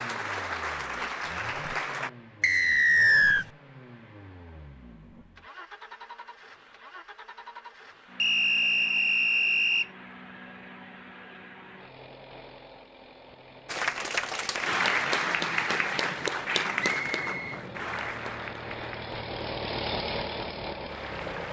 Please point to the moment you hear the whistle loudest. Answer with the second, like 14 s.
3 s.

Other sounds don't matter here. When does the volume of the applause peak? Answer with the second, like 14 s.
15 s.